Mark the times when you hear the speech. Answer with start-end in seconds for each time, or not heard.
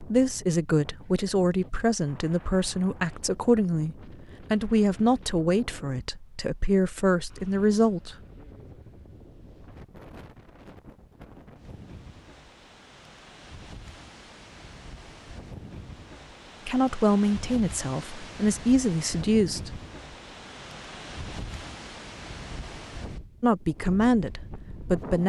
0.0-8.2, 16.6-19.8, 23.4-25.2.